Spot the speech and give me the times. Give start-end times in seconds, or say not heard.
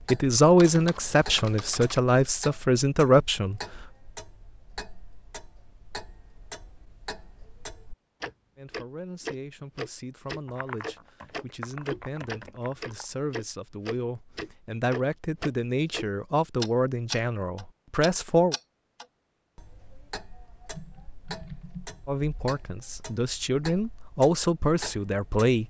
0.1-3.6, 8.6-18.6, 22.1-25.6.